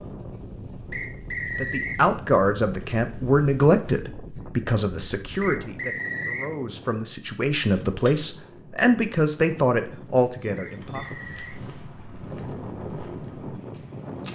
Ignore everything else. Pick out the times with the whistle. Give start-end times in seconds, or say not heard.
0.9-2.0, 5.4-6.5, 10.6-11.6.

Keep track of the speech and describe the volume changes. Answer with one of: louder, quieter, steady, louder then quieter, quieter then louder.
quieter then louder.